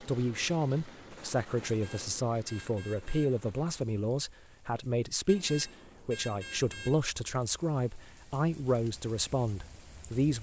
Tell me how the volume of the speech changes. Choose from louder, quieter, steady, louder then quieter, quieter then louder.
steady.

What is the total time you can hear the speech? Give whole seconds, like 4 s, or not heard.
10 s.